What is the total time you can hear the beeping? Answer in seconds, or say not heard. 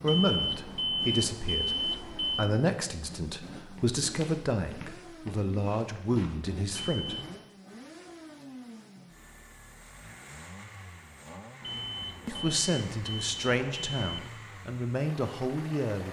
6 s.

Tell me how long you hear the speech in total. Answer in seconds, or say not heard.
11 s.